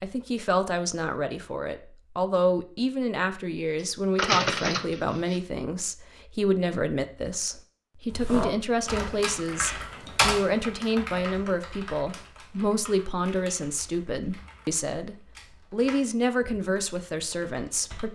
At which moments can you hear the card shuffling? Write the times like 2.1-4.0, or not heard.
3.8-5.4.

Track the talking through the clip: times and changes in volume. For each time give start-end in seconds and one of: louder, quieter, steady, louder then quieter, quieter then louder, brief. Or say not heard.
0.0-18.1 steady.